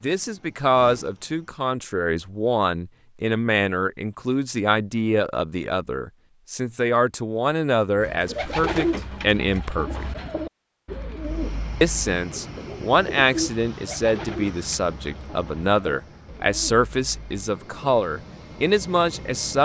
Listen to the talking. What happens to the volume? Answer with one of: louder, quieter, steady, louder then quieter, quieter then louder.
steady.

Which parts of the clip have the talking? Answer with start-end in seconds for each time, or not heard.
0.0-10.1, 11.8-19.6.